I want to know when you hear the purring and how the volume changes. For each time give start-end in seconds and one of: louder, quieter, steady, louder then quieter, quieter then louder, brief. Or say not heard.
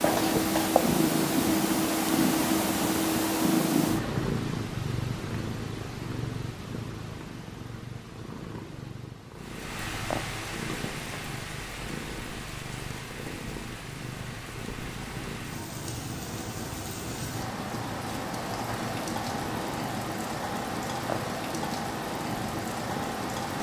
0.0-23.5 quieter.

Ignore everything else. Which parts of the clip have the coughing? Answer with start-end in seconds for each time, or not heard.
0.1-0.8.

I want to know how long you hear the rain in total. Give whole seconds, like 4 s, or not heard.
14 s.